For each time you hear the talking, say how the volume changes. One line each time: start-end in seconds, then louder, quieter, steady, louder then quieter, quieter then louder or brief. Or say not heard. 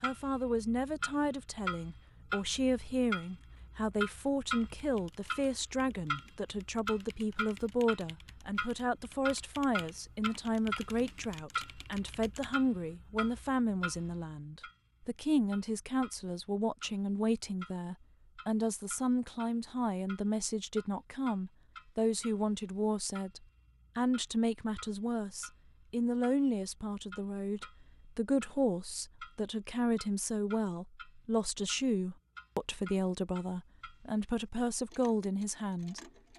0.0-36.0 steady.